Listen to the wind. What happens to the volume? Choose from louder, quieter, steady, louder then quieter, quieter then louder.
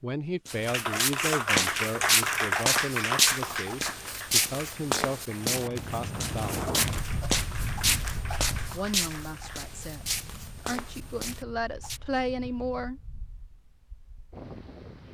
quieter.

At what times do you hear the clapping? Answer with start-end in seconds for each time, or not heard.
0.7-9.8.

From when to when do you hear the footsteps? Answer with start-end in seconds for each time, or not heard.
0.5-12.0.